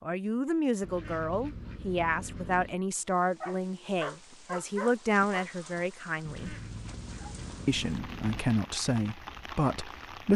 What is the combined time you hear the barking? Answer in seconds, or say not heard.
2 s.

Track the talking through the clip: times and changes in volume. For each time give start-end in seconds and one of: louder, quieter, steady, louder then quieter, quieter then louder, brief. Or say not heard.
0.0-6.5 steady
7.7-10.3 brief.